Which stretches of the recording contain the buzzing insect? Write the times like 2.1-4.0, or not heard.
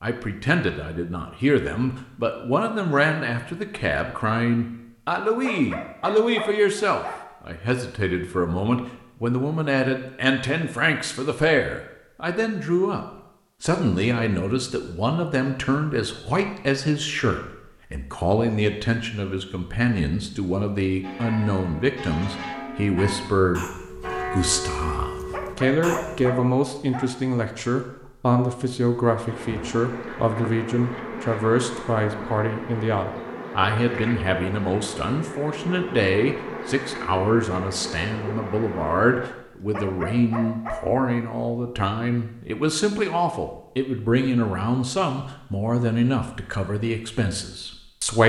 29.2-39.3.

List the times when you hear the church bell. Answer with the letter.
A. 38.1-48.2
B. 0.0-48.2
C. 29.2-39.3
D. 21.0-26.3
D.